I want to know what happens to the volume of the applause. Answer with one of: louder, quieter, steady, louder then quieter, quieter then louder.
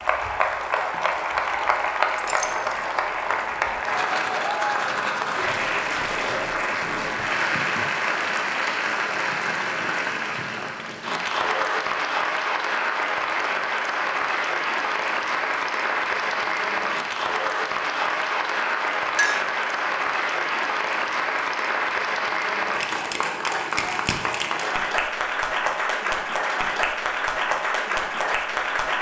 steady.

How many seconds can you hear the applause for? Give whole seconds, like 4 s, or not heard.
29 s.